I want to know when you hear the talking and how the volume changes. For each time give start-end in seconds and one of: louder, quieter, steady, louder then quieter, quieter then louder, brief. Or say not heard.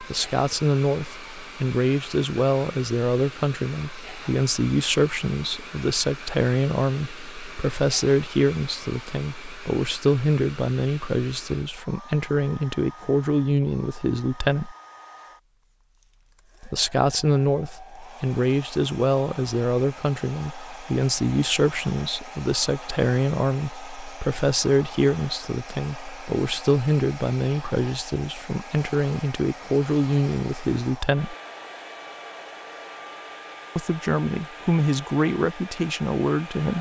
0.0-14.8 steady
16.6-31.4 steady
33.8-36.7 brief.